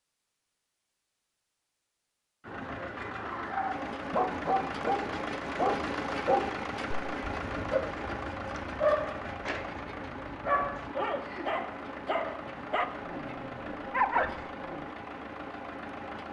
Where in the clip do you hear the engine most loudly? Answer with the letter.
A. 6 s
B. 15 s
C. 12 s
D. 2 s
A.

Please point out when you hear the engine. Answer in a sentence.
The engine can be heard from 2.4 to 16.2 s.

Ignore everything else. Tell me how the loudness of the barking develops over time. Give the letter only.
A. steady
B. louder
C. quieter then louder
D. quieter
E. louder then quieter
A.